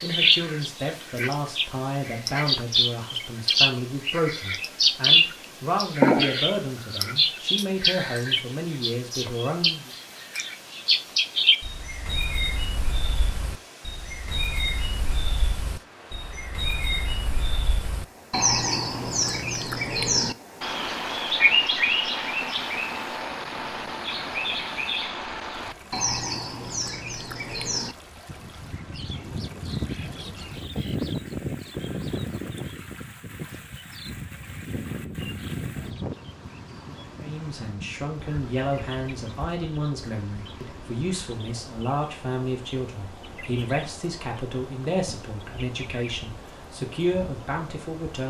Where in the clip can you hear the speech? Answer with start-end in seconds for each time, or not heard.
0.0-9.9, 37.2-48.2.